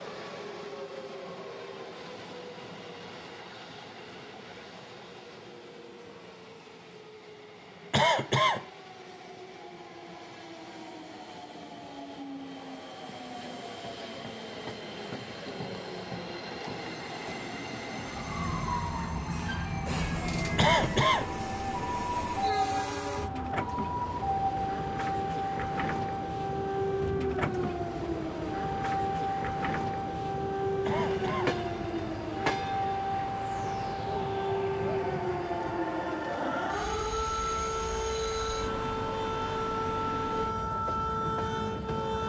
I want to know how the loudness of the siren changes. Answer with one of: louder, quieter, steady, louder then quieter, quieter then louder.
steady.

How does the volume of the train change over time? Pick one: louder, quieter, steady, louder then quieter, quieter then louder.
louder.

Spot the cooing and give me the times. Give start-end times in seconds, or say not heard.
not heard.